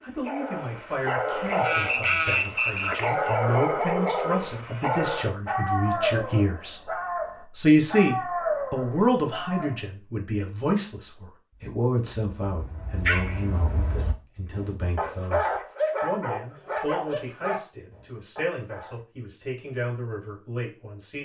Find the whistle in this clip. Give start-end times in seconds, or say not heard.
1.9-3.1.